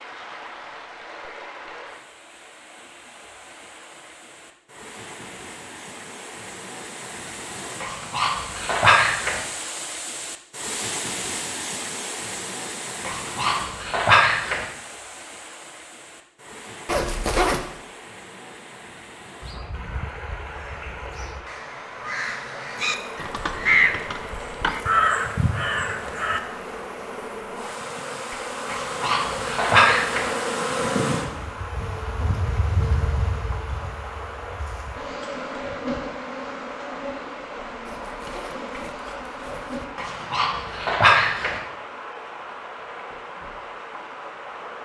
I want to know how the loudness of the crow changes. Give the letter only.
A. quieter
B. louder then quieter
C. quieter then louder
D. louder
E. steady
D.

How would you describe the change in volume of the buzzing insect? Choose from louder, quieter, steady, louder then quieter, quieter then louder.
louder then quieter.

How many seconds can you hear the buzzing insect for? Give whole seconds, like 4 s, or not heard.
17 s.